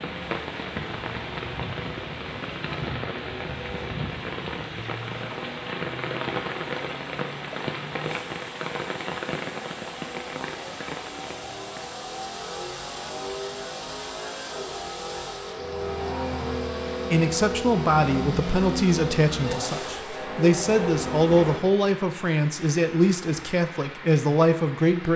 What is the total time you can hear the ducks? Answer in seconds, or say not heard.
not heard.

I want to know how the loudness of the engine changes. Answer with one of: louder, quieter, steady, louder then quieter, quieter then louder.
louder.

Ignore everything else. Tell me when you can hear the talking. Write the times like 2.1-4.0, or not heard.
17.1-25.1.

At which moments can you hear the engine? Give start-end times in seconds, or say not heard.
0.0-21.6.